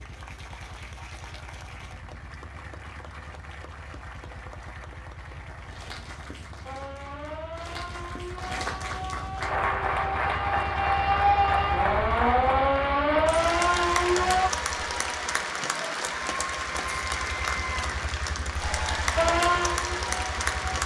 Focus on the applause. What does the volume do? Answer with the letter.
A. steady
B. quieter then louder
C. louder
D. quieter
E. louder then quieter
C.